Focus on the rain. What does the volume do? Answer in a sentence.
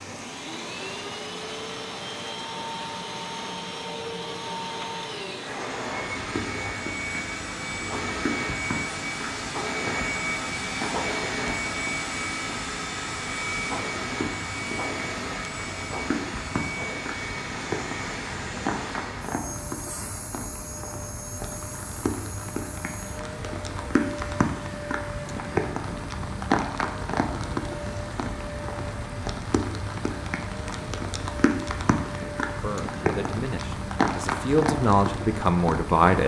The volume of the rain goes up.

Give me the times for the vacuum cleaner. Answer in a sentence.
You can hear the vacuum cleaner from 0.0 to 36.2 s.